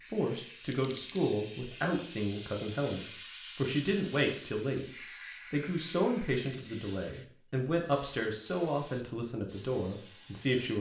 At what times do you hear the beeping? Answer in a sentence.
The beeping can be heard from 0.7 to 1.2 s.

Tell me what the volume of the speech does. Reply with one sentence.
The volume of the speech stays about the same.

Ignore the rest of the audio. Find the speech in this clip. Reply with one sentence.
You can hear the speech from 0.1 to 4.8 s and from 5.5 to 10.7 s.